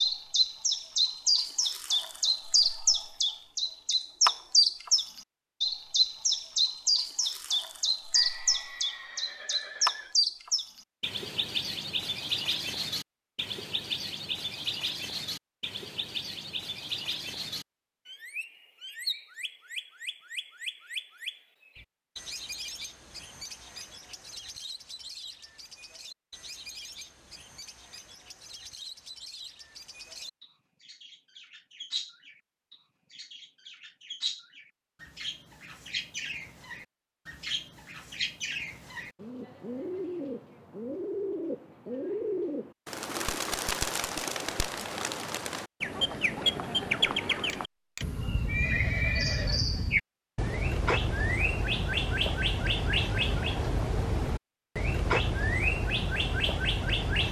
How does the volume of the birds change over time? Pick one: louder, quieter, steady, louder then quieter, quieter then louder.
quieter then louder.